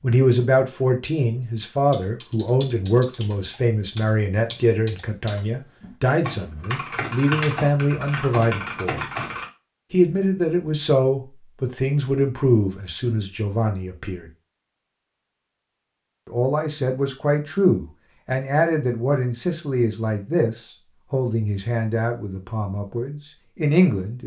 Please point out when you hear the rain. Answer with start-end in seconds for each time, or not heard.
not heard.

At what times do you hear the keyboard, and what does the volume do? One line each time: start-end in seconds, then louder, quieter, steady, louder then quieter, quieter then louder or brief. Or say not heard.
1.9-9.4 louder.